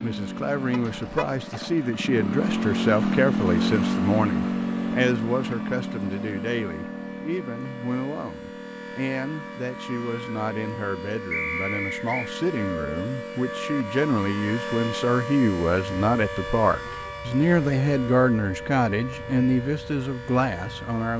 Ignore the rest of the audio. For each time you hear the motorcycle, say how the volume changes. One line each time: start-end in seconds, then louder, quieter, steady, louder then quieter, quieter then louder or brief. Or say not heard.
0.0-21.0 quieter.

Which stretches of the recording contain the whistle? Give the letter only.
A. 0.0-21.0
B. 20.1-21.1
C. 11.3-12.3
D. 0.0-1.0
C.